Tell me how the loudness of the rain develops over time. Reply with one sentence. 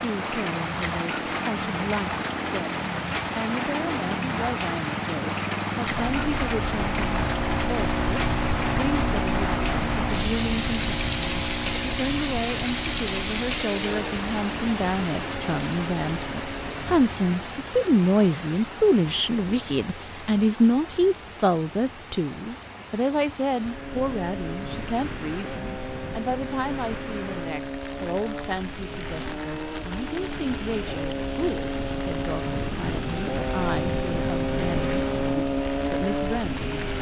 The volume of the rain goes down.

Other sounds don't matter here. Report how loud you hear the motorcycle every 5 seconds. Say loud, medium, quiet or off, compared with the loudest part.
medium, loud, medium, medium, medium, medium, loud, loud.